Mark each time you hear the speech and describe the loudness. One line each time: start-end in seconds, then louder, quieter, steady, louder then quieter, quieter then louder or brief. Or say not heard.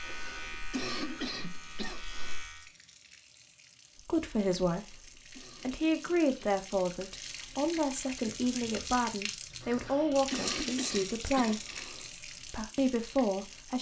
4.0-13.7 steady.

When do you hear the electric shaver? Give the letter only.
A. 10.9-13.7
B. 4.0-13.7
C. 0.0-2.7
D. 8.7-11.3
C.